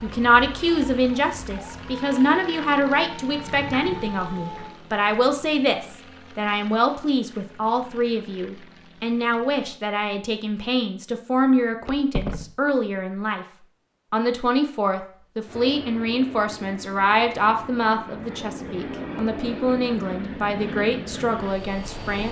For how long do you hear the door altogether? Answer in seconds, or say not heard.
2 s.